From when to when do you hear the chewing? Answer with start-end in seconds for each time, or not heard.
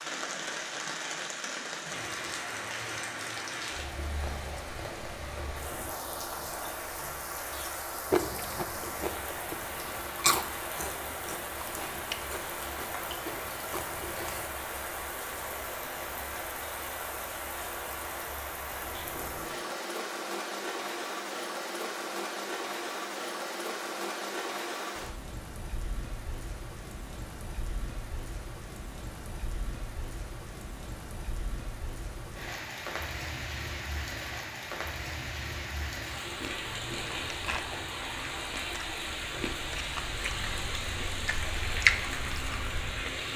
7.5-14.5, 36.2-43.3.